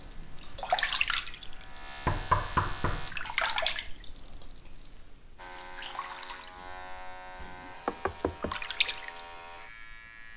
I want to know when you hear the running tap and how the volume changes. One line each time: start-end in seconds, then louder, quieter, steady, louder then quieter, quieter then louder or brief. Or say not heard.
0.0-10.3 quieter then louder.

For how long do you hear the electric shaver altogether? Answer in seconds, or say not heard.
8 s.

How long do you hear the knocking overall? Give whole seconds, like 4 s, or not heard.
2 s.